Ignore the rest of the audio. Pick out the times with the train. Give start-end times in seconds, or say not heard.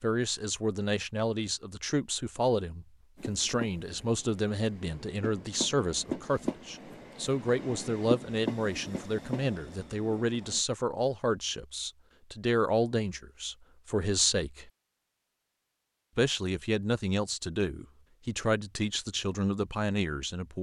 3.1-10.6.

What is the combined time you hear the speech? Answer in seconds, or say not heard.
19 s.